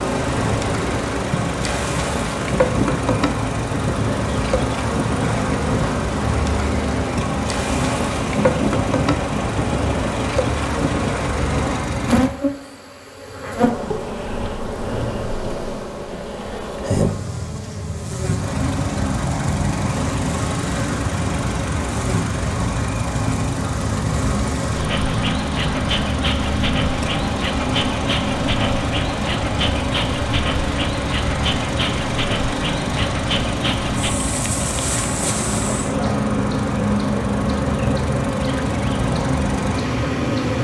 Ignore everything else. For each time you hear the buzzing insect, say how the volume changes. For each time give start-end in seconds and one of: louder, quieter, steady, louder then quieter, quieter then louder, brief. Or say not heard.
0.0-40.5 steady.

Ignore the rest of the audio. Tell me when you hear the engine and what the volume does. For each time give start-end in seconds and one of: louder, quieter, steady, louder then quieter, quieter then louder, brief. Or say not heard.
0.0-12.3 steady
18.4-40.5 steady.